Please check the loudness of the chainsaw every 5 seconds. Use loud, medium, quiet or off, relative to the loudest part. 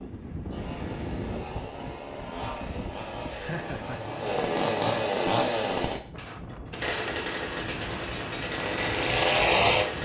medium, loud.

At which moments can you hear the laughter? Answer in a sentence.
The laughter can be heard from 3.2 to 4.0 s.